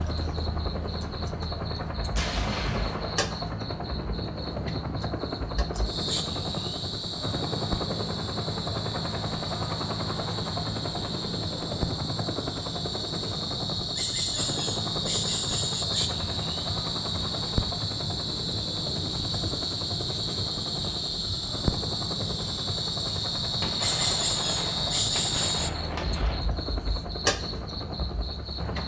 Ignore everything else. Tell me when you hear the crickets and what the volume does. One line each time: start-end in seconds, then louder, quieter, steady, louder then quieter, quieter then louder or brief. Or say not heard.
0.0-28.8 louder.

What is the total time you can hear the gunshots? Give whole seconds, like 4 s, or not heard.
4 s.